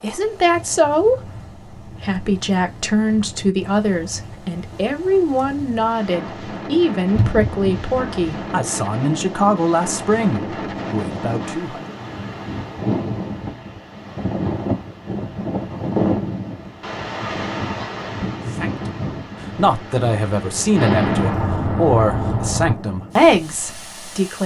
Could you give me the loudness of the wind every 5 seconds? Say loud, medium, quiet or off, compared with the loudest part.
quiet, medium, loud, loud, medium.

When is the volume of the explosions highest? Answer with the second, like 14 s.
21 s.